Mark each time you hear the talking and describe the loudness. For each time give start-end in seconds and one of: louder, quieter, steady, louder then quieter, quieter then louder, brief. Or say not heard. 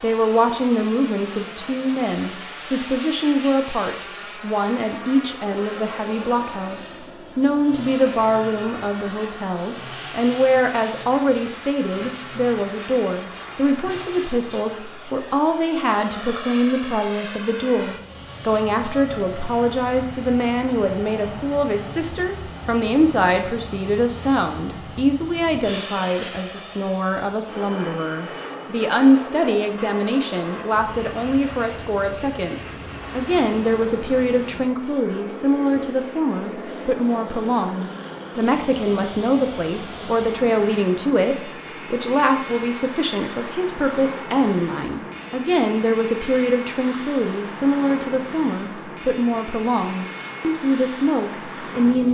0.0-52.0 steady.